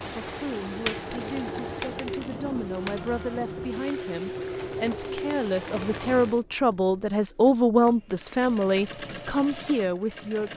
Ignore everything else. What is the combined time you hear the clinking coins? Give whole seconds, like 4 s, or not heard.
2 s.